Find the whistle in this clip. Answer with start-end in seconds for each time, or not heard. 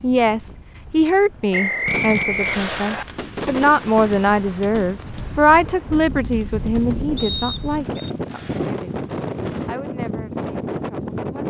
1.5-3.0, 7.2-8.1.